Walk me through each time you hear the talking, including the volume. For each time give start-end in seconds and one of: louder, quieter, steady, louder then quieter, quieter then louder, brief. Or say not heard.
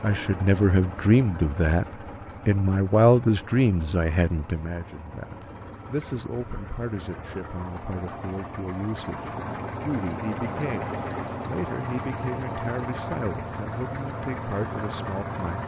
0.0-1.9 brief
2.5-15.6 quieter.